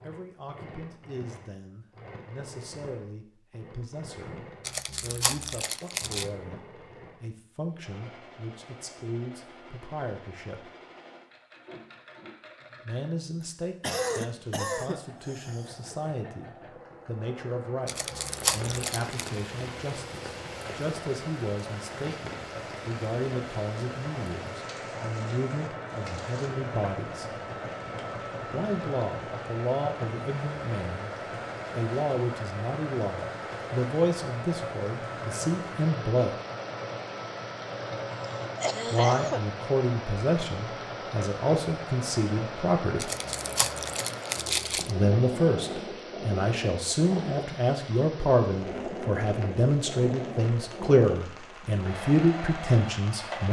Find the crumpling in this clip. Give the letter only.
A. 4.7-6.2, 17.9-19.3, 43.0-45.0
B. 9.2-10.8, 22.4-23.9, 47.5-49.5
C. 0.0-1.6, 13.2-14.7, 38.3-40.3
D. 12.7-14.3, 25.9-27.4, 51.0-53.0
A.